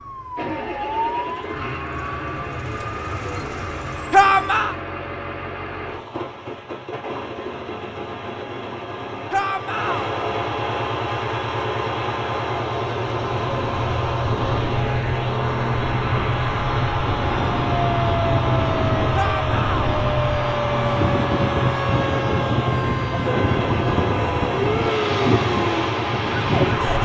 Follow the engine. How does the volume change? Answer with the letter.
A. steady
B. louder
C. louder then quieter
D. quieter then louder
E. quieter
B.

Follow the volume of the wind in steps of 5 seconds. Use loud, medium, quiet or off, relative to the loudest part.
off, off, medium, loud, loud, loud.